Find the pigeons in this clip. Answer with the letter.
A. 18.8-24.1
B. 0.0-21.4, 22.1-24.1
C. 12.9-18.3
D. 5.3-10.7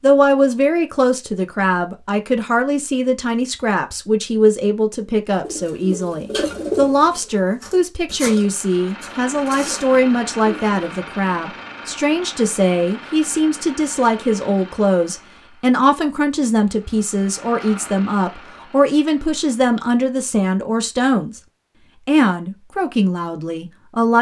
D.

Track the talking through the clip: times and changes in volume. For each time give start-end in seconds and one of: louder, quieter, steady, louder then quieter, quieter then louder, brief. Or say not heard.
0.0-21.4 steady
22.1-24.1 brief.